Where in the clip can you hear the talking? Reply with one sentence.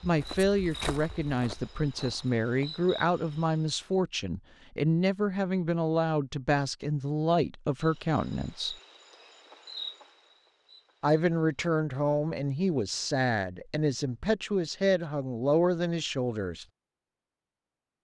The talking can be heard from 0.0 to 8.8 s and from 11.0 to 16.6 s.